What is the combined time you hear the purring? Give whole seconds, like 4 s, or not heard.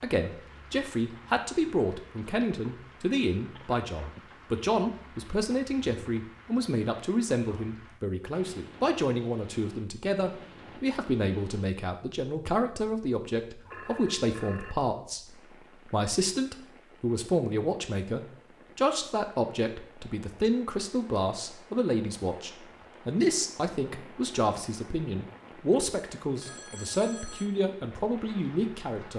not heard.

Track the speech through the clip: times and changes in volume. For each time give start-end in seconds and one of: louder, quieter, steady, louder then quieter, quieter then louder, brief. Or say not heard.
0.0-29.1 steady.